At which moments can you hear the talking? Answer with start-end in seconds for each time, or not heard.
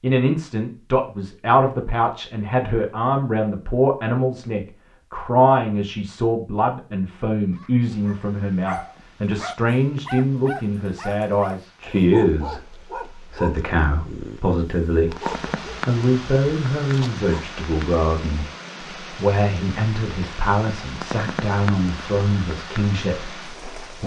0.0-24.0.